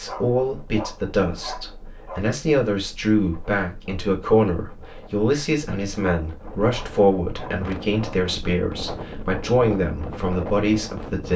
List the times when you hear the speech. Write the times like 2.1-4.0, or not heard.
0.0-11.3.